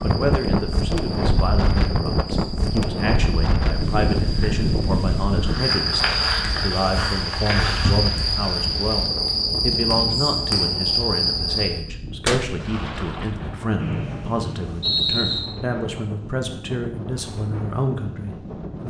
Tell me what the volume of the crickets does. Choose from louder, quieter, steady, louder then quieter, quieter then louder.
louder.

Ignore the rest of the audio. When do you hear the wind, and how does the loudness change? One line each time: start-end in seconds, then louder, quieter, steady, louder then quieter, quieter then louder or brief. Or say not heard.
0.0-18.8 quieter.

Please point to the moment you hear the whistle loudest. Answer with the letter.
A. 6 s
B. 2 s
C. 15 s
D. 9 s
C.